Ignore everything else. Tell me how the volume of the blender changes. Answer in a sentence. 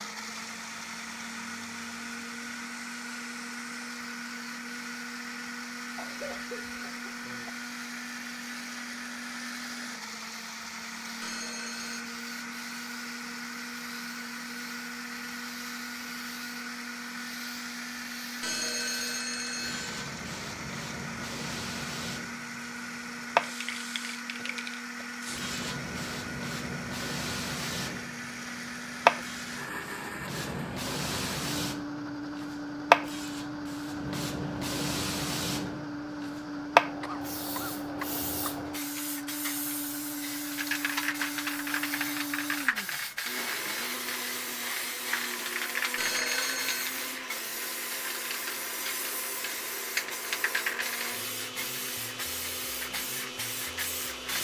The loudness of the blender stays about the same.